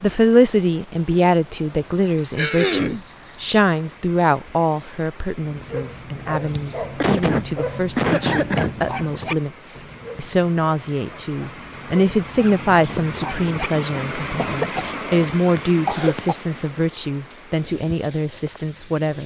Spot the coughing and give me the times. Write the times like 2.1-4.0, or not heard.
2.4-3.0, 6.5-8.8, 14.3-16.4.